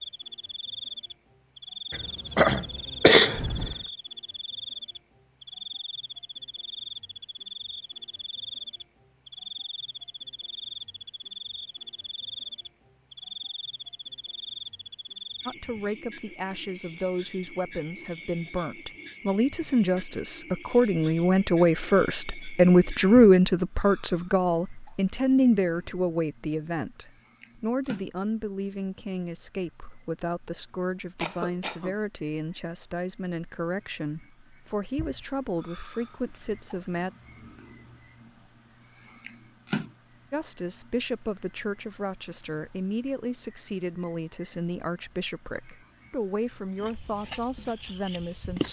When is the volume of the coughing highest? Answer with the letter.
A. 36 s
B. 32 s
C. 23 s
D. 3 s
D.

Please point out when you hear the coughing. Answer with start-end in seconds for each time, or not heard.
1.9-3.8, 31.2-31.9.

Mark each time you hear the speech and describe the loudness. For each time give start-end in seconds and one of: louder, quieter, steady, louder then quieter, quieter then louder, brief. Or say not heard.
15.4-37.1 louder then quieter
40.3-48.6 steady.